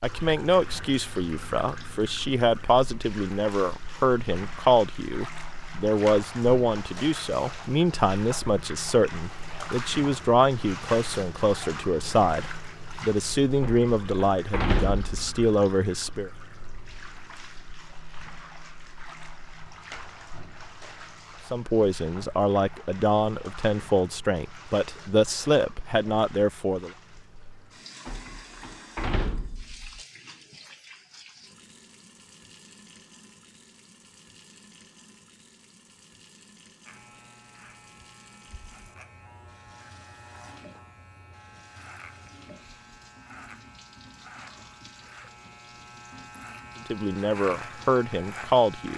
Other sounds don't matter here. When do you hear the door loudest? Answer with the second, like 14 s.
15 s.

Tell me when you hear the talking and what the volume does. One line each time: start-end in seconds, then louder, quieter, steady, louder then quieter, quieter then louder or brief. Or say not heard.
0.0-16.3 steady
21.5-26.9 steady
46.9-48.9 brief.